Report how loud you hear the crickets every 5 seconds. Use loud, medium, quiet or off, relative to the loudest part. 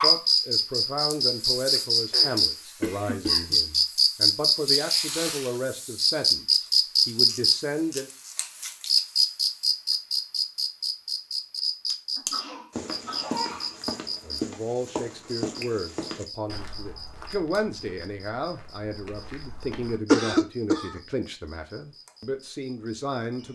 loud, loud, medium, quiet, quiet.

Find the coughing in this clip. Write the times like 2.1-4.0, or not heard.
2.1-3.6, 12.2-13.8, 20.1-21.0.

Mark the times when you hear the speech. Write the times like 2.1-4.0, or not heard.
0.0-8.1, 14.2-23.5.